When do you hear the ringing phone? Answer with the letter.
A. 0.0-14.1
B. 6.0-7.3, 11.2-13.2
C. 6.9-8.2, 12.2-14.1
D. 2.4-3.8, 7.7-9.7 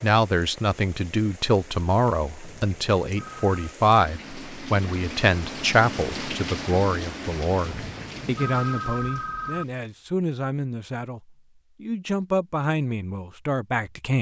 D.